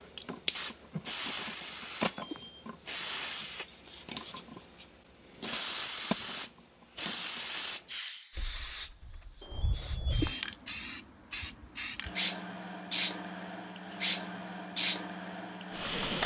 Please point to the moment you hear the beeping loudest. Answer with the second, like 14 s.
10 s.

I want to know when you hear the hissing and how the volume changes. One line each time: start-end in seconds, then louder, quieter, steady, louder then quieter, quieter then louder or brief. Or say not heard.
0.0-16.2 steady.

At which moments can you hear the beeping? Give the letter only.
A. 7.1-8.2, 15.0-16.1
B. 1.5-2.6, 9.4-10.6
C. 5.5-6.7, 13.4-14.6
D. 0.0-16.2
B.